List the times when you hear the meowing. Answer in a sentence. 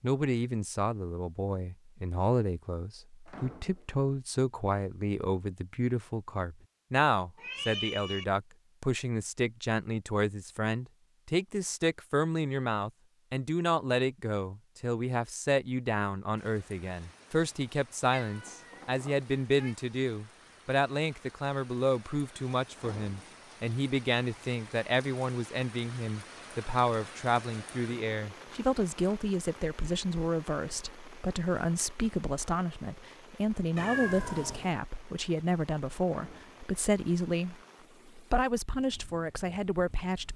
The meowing can be heard from 7.3 to 8.2 s, from 18.1 to 19.8 s and from 33.8 to 34.8 s.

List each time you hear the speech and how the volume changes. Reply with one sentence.
The speech can be heard from 0.0 to 37.5 s, at a steady volume; and briefly from 38.1 to 40.3 s.